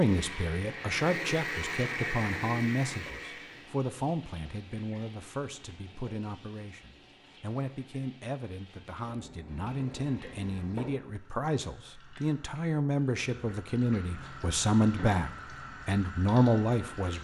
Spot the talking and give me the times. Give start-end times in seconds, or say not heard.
0.0-17.1.